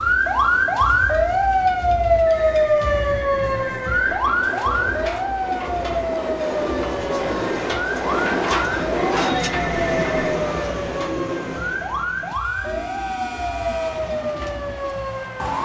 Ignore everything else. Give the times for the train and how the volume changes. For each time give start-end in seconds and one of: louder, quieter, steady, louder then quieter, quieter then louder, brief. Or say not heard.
0.0-15.6 louder then quieter.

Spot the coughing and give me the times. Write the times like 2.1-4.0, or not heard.
not heard.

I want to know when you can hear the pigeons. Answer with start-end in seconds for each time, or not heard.
5.7-14.9.